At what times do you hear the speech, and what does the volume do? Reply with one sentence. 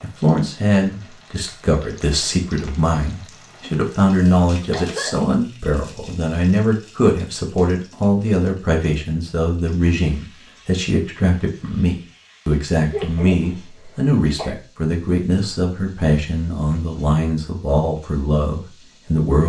You can hear the speech from 0.0 to 19.4 s, at a steady volume.